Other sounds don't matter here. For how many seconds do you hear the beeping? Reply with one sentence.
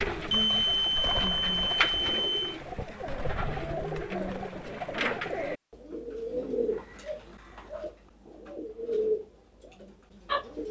You can hear the beeping for 2 seconds altogether.